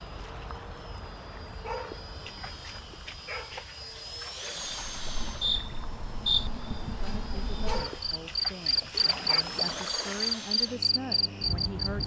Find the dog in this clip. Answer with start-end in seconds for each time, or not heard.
1.6-4.5, 7.7-9.4.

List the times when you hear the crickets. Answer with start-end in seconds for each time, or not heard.
4.6-12.0.